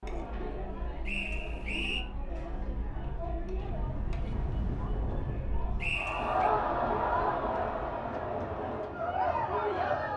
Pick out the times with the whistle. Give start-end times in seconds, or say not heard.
1.1-2.0, 5.8-6.5.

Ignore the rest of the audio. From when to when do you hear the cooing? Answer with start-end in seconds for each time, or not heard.
not heard.